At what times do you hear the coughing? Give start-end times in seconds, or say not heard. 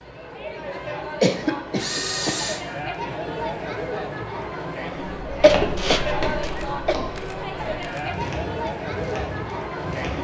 1.2-2.4, 5.4-7.0.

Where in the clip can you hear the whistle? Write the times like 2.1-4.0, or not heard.
not heard.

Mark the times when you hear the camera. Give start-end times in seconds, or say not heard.
1.8-2.6, 6.5-8.1.